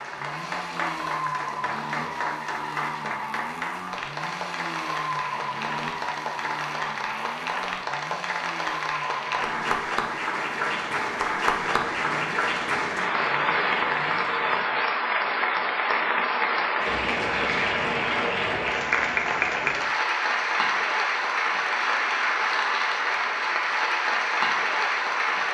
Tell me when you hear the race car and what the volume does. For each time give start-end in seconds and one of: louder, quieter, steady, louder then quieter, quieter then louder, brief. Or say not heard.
0.0-14.7 quieter.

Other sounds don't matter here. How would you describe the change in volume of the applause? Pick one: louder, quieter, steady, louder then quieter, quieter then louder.
louder.